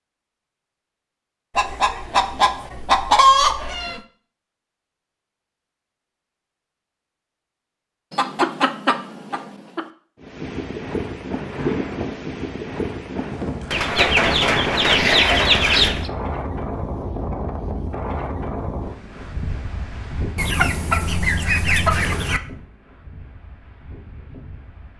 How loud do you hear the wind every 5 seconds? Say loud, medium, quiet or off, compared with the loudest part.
off, off, loud, loud, medium.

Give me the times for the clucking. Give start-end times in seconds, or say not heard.
1.6-4.0, 8.1-9.8, 13.7-16.1, 20.4-22.4.